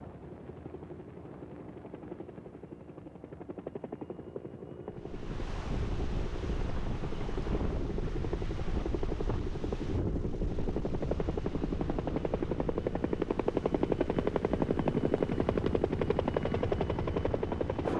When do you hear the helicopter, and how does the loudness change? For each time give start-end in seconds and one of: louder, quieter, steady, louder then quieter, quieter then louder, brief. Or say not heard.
0.0-17.9 louder.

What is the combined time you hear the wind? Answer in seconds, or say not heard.
13 s.